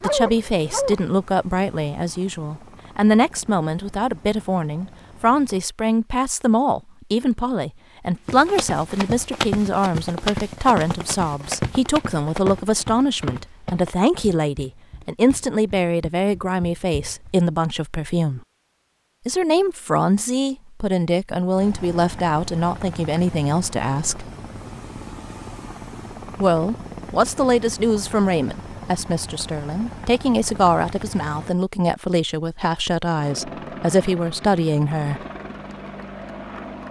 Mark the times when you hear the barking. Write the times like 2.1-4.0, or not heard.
0.0-1.0.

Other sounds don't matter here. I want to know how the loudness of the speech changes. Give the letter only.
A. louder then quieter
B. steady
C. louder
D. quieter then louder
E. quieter
B.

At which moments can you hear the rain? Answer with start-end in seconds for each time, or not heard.
not heard.